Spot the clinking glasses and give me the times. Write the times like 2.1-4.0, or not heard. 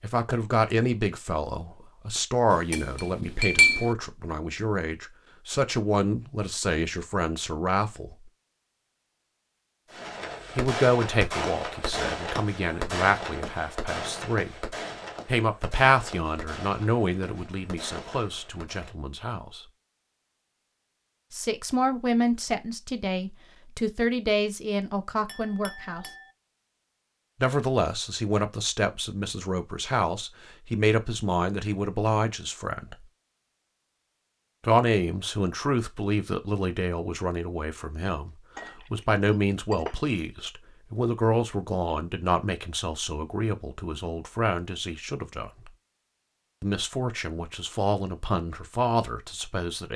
2.5-4.0, 25.2-26.3, 38.5-40.0.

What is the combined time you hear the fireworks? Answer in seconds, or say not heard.
9 s.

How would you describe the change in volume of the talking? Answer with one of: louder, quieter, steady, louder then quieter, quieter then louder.
steady.